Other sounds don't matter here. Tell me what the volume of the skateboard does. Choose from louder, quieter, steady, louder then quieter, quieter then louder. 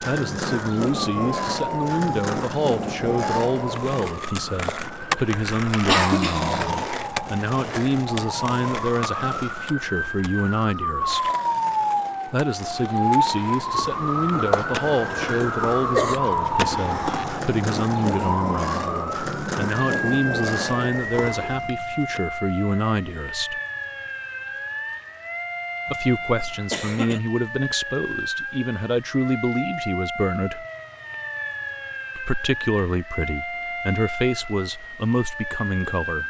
quieter then louder.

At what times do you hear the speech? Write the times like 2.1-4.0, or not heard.
0.0-11.3, 12.2-23.6, 25.9-30.6, 32.1-36.2.